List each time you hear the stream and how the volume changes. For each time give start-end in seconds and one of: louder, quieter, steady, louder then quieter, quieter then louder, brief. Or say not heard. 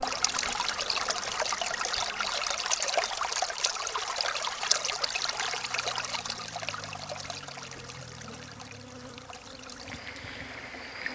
0.0-11.0 quieter.